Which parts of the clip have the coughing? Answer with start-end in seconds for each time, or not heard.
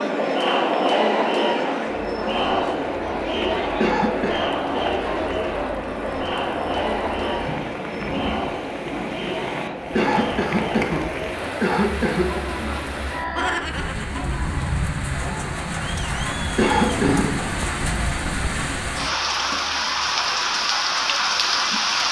3.8-4.4, 9.9-12.4, 16.6-17.2.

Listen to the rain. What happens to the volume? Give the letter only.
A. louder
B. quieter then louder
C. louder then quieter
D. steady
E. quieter
A.